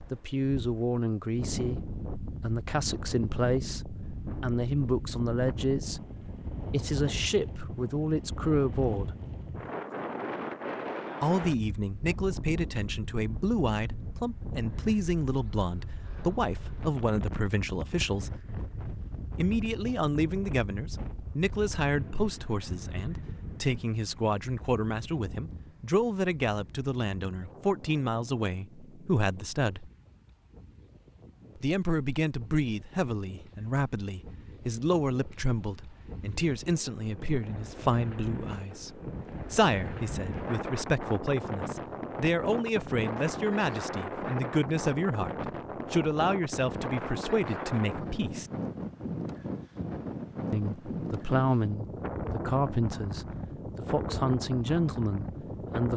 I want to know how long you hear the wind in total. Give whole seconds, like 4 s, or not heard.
56 s.